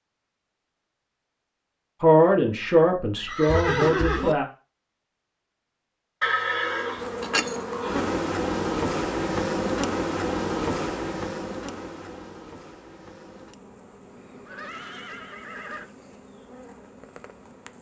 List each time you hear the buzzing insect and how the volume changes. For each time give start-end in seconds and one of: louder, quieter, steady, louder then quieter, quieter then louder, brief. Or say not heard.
7.0-17.7 quieter.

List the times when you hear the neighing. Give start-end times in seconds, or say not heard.
3.1-4.3, 6.2-8.1, 14.4-15.8.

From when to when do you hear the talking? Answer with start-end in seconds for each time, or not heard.
2.0-4.5.